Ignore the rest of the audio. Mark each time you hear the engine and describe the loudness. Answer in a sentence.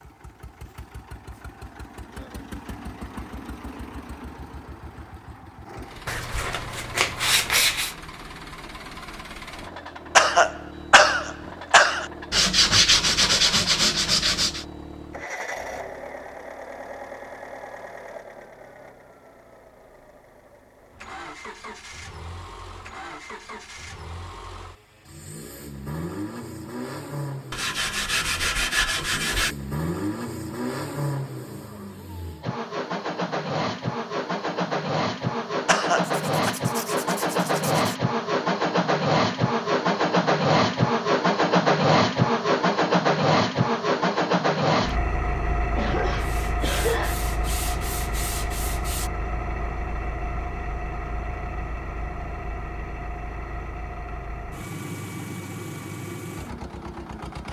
The engine can be heard from 0.0 to 57.4 s, getting louder then quieter.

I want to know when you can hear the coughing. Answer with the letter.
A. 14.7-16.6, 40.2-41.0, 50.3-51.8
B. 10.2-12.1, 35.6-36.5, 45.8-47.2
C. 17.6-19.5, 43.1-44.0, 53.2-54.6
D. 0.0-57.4
B.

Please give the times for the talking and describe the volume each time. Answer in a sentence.
The talking can't be heard in this clip.